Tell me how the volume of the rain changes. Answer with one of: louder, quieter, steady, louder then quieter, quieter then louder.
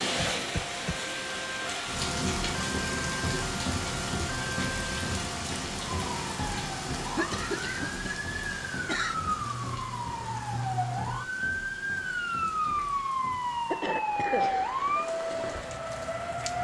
quieter.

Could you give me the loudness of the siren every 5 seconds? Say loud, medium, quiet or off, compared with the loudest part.
medium, medium, loud, loud.